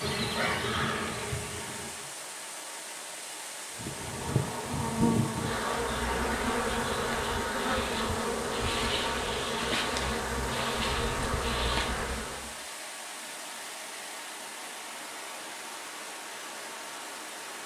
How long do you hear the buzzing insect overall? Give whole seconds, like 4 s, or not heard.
11 s.